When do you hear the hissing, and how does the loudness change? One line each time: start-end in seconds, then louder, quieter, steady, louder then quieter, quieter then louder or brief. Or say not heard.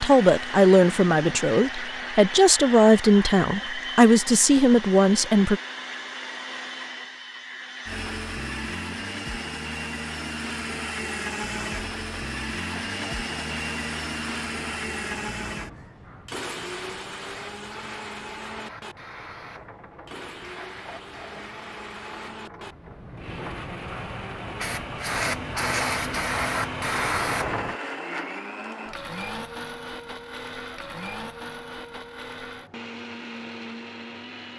11.7-27.8 louder.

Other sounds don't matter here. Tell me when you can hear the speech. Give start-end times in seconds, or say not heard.
0.0-5.6.